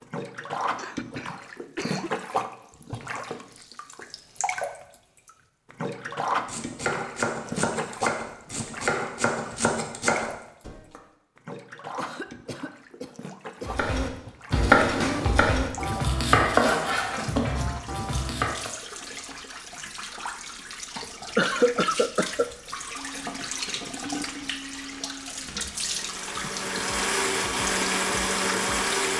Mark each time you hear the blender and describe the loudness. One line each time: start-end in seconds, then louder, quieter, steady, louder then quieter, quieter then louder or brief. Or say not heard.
22.9-29.1 louder.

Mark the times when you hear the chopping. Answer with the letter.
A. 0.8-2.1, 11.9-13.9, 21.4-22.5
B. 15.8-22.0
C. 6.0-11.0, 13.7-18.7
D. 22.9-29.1
C.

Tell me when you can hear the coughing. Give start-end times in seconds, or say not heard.
0.8-2.1, 11.9-13.9, 21.4-22.5.